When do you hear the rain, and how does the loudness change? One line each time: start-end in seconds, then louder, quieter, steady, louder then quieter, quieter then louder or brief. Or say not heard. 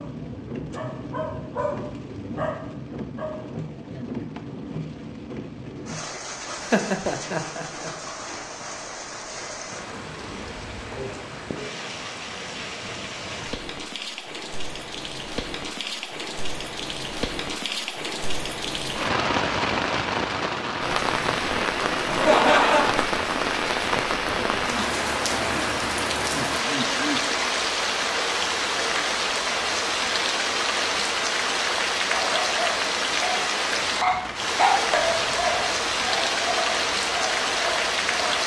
0.0-38.4 louder.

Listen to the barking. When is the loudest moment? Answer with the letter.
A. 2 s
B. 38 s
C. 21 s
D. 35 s
D.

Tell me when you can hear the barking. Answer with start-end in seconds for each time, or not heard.
0.0-3.7, 32.0-38.4.